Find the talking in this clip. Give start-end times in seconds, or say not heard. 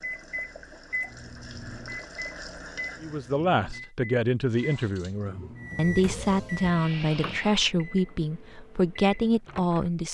3.0-10.0.